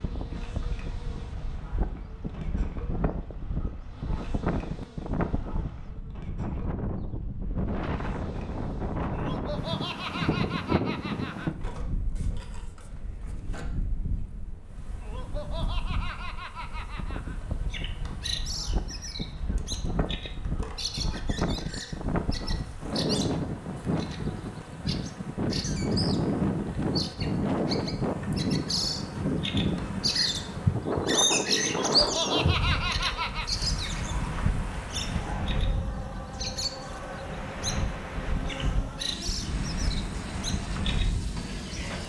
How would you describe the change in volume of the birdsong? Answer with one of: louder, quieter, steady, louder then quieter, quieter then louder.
louder then quieter.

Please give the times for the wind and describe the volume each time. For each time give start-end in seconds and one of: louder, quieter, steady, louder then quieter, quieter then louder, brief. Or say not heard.
0.0-42.0 louder then quieter.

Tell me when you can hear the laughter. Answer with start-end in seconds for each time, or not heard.
9.1-11.5, 15.0-17.4, 31.6-33.5.